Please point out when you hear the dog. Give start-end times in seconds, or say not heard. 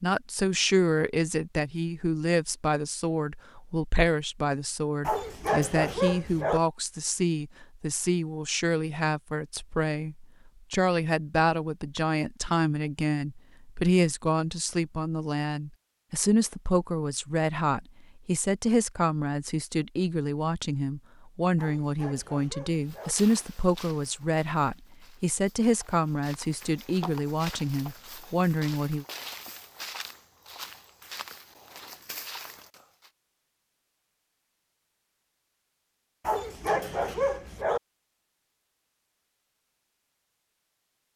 5.0-6.6, 21.6-23.1, 36.2-37.8.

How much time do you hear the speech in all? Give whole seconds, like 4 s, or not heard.
29 s.